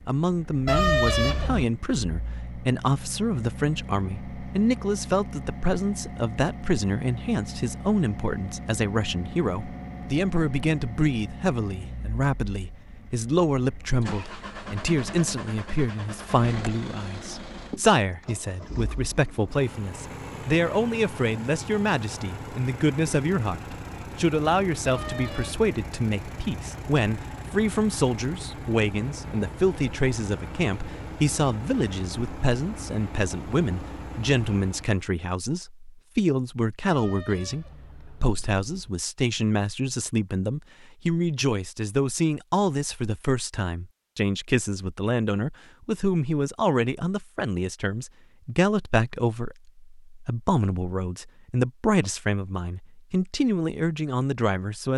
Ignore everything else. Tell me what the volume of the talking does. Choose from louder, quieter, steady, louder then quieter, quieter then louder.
steady.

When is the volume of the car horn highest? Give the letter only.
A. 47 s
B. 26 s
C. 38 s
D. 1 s
D.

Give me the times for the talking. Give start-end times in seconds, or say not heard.
0.1-54.9.